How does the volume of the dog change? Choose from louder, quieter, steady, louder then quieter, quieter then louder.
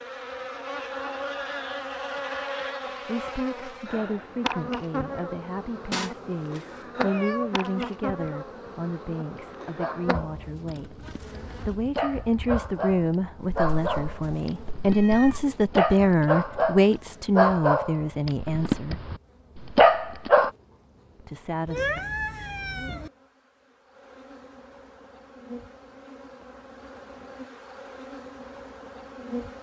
louder.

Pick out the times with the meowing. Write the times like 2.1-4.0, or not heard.
5.9-7.9, 13.6-15.5, 21.6-23.1.